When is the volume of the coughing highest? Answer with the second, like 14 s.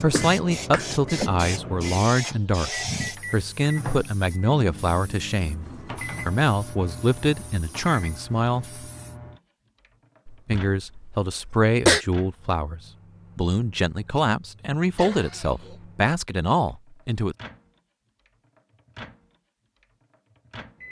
12 s.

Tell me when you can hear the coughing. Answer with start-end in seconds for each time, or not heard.
0.1-0.8, 10.2-12.1, 14.9-15.8.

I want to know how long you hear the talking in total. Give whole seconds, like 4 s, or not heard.
16 s.